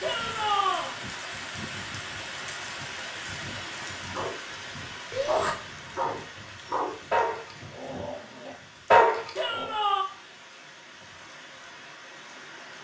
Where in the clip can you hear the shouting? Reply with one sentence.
You can hear the shouting from 0.0 to 0.9 s, from 5.1 to 5.5 s and from 9.3 to 10.1 s.